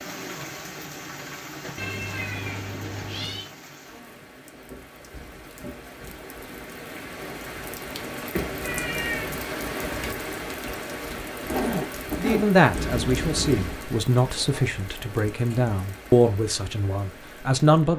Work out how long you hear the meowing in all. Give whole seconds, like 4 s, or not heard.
4 s.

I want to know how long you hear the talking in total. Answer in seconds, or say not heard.
6 s.